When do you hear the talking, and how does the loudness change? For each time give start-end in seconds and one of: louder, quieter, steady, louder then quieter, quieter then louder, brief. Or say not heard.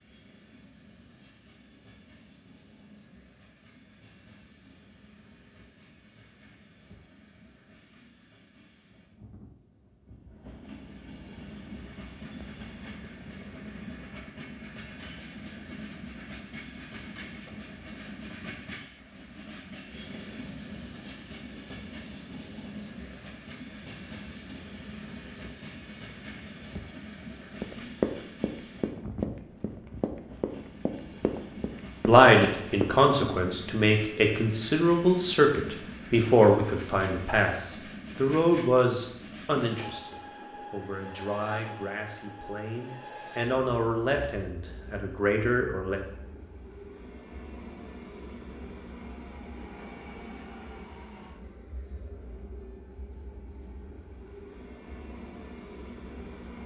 32.0-46.0 quieter then louder.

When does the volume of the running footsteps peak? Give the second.
28 s.